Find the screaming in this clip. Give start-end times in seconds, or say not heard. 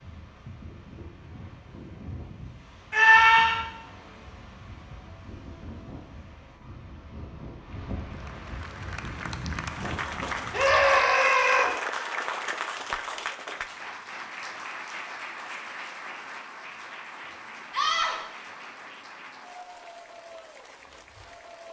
2.9-3.6, 10.5-11.7, 17.7-18.2.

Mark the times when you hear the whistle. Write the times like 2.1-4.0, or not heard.
not heard.